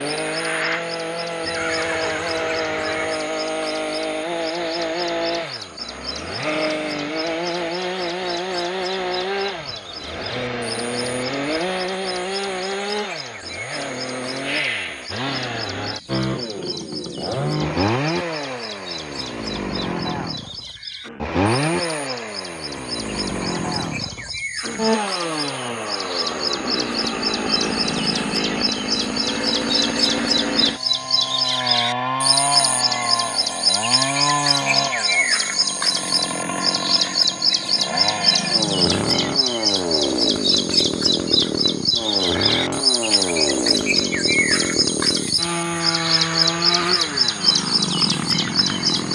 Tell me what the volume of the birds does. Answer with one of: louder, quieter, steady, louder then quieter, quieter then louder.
louder.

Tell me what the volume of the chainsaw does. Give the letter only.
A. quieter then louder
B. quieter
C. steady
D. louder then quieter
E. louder
C.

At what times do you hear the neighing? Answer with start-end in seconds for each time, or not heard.
1.4-3.2, 45.7-47.3.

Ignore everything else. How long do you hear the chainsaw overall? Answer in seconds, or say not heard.
49 s.